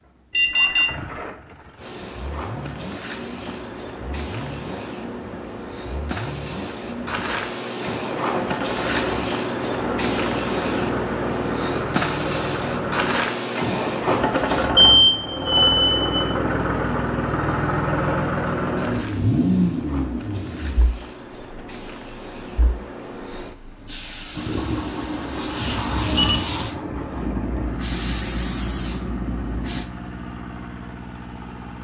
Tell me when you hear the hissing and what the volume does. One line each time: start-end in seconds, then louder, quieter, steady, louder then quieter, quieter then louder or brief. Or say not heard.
1.8-14.7 louder
18.4-29.9 louder.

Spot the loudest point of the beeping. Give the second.
15 s.